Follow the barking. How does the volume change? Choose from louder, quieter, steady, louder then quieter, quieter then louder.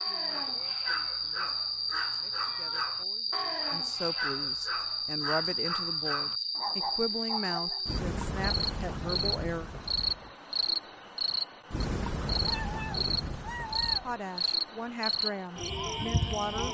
steady.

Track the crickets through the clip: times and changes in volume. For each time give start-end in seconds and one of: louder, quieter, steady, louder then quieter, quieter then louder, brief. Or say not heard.
0.0-16.7 steady.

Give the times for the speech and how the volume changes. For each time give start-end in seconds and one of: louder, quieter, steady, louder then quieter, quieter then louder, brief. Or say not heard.
0.0-9.7 louder
14.0-16.7 brief.